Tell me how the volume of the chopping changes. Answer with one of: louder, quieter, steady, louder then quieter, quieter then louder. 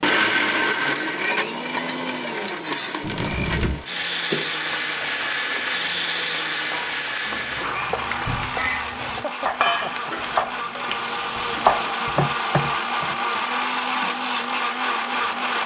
louder.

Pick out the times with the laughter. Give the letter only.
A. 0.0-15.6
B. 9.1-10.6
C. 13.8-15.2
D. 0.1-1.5
B.